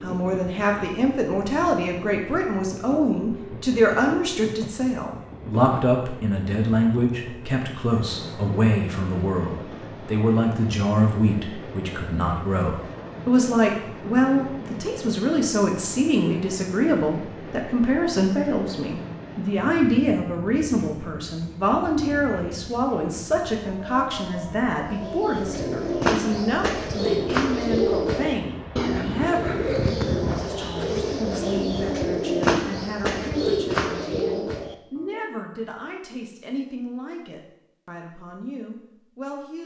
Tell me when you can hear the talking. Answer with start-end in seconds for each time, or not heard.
0.0-39.6.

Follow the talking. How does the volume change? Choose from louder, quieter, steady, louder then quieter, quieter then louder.
quieter.